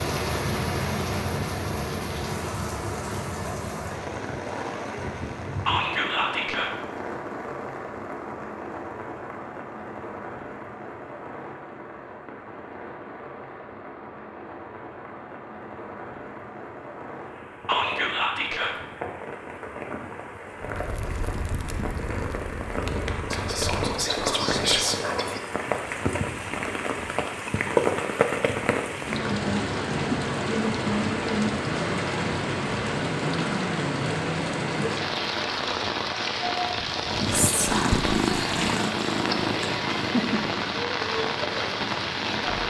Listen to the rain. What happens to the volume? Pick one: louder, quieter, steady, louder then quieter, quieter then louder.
quieter then louder.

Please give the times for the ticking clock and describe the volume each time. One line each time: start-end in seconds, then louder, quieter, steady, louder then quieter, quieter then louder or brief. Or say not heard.
not heard.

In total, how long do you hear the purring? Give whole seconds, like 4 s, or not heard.
9 s.